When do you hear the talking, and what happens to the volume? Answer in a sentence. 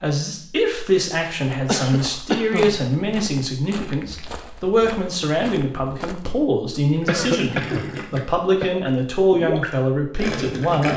You can hear the talking from 0.0 to 10.9 s, at a steady volume.